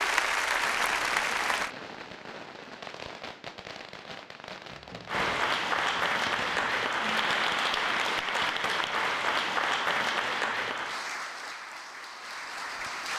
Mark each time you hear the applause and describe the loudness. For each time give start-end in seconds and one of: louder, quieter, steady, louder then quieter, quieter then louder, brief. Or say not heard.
0.0-1.7 brief
5.0-13.1 quieter.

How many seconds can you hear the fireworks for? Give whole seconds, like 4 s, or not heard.
6 s.